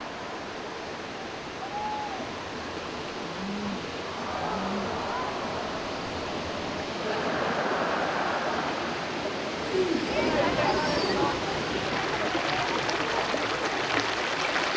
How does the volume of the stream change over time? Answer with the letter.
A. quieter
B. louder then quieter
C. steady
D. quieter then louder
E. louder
E.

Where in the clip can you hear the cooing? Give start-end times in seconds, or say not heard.
3.1-4.9, 9.6-11.3.